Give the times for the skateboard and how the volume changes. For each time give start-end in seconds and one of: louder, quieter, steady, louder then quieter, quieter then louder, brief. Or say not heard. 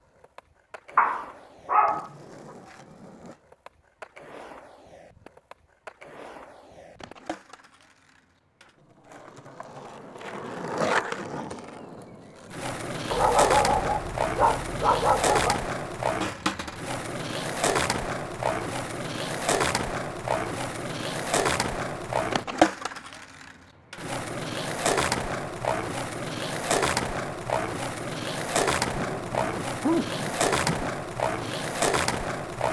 0.0-32.6 louder.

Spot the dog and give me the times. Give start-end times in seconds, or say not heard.
0.9-2.1, 13.1-15.6, 28.9-30.9.